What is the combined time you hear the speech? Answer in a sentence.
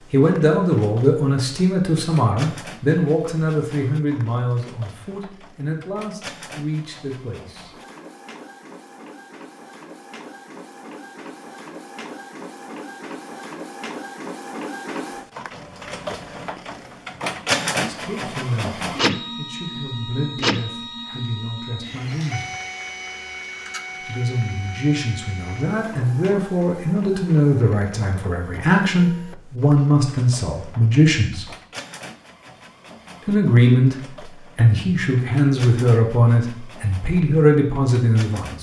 The speech can be heard for 25 seconds in total.